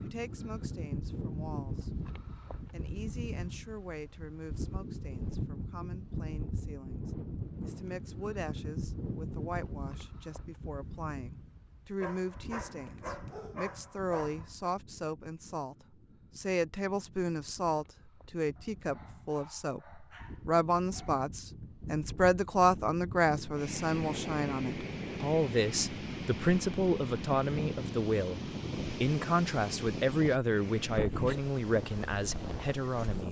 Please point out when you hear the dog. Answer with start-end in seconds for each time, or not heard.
12.0-14.7, 18.6-21.2.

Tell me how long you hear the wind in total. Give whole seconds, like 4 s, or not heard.
33 s.